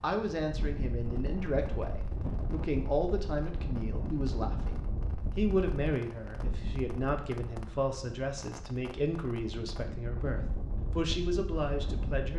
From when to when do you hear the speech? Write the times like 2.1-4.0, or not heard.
0.0-12.3.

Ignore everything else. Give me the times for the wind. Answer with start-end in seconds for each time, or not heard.
0.0-12.3.